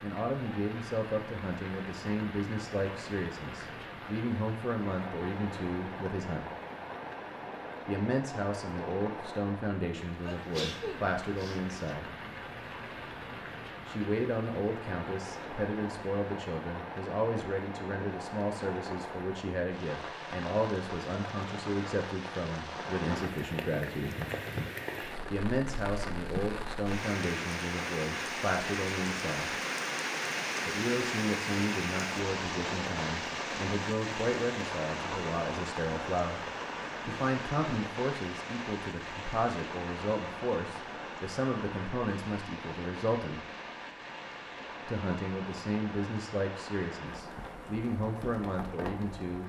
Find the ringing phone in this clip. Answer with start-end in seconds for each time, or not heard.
not heard.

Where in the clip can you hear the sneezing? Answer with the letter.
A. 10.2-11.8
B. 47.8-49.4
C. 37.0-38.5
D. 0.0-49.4
A.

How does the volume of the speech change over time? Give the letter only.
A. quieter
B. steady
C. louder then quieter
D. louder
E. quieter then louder
B.